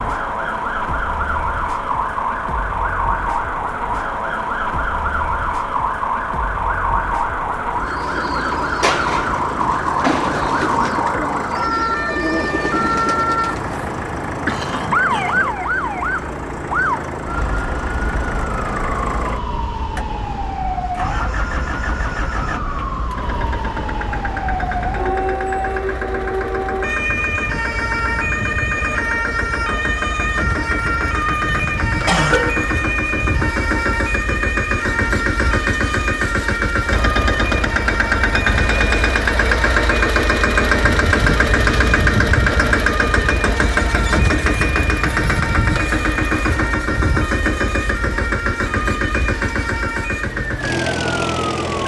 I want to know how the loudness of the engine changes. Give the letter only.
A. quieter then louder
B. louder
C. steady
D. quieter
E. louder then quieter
B.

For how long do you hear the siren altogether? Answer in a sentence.
The siren can be heard for 52 seconds in total.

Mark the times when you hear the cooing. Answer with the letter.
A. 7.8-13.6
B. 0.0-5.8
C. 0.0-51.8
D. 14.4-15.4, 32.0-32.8
A.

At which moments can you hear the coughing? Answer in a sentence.
You can hear the coughing from 14.4 to 15.4 s and from 32.0 to 32.8 s.